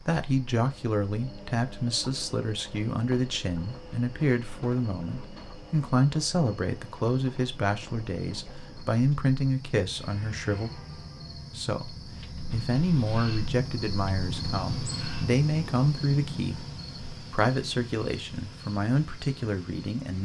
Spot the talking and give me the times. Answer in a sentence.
The talking can be heard from 0.0 to 10.8 s, from 11.6 to 16.6 s and from 17.3 to 20.1 s.